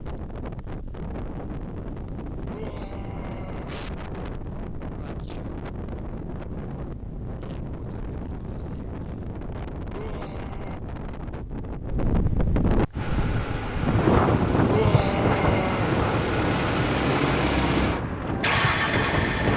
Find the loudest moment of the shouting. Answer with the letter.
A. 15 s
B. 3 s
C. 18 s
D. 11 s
A.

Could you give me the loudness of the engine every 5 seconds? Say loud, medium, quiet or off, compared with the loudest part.
off, off, medium, loud.